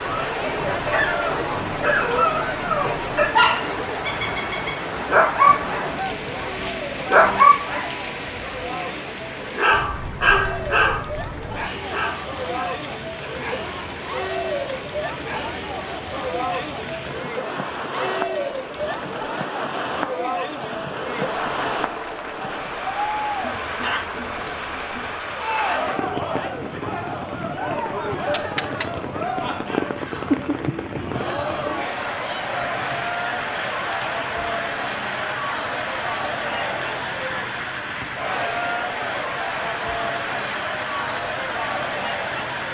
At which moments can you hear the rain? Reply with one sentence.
You can hear the rain from 0.0 to 42.7 s.